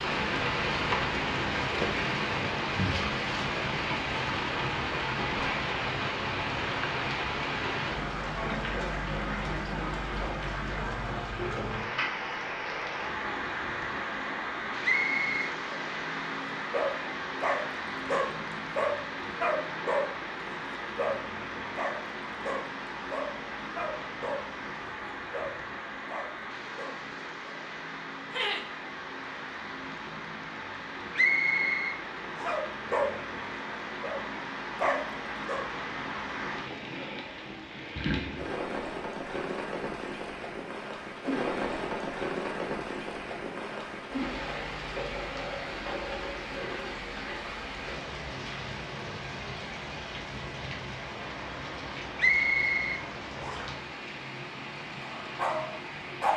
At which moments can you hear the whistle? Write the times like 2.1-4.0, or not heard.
14.8-15.3, 31.1-32.5, 52.1-53.6.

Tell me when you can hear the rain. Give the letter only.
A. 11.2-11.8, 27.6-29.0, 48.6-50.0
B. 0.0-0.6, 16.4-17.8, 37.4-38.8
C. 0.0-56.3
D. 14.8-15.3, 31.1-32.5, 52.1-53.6
C.